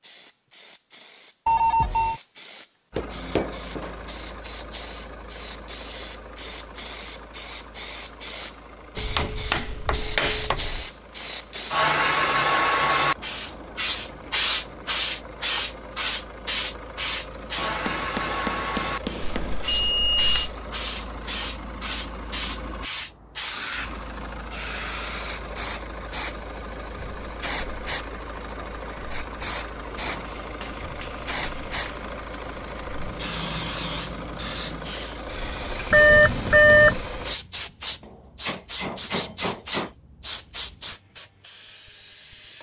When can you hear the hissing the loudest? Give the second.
10 s.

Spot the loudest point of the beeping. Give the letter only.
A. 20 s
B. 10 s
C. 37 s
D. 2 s
C.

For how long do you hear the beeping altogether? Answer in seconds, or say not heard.
3 s.